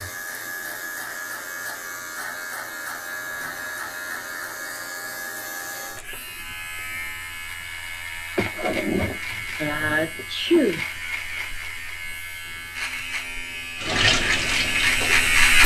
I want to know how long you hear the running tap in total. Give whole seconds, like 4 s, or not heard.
2 s.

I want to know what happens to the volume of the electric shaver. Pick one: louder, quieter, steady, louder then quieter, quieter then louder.
louder.